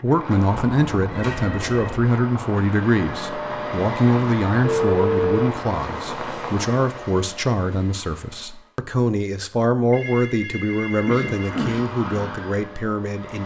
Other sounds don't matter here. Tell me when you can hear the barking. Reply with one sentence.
You can't hear the barking here.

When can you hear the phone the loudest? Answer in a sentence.
The volume of the phone peaks at 5 seconds.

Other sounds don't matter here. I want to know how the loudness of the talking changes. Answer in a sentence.
The volume of the talking stays about the same.